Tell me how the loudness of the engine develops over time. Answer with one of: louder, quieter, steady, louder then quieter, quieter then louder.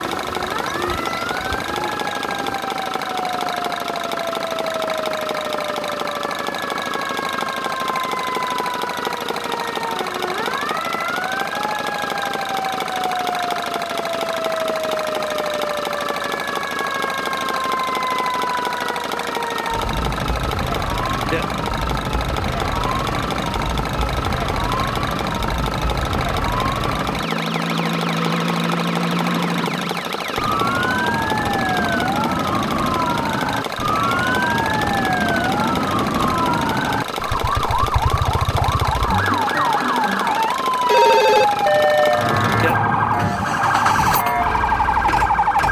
steady.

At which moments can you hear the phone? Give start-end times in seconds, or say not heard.
40.9-42.4.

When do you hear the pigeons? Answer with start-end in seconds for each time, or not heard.
0.0-2.6.